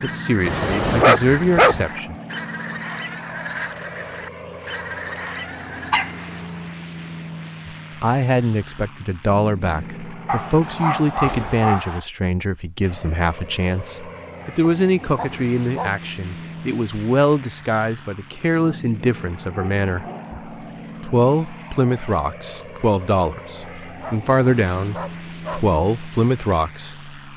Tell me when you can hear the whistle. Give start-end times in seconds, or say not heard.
not heard.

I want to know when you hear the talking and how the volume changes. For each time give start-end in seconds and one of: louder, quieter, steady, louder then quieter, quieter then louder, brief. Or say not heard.
0.0-2.1 brief
7.7-27.1 steady.